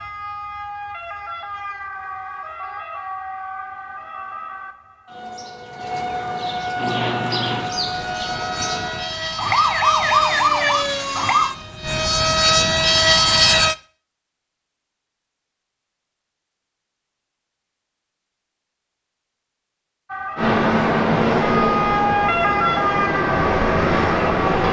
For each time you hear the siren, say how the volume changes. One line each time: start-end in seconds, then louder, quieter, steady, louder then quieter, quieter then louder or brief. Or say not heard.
0.0-11.5 louder
20.1-24.6 louder then quieter.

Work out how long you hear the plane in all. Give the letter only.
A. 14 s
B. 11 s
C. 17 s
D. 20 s
B.